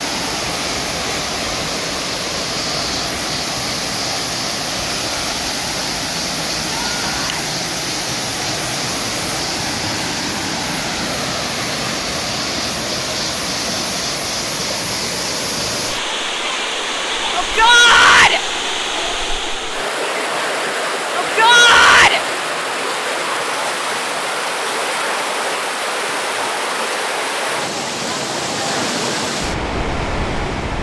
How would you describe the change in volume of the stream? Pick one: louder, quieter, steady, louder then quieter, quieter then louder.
steady.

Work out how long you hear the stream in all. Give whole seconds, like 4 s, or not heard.
31 s.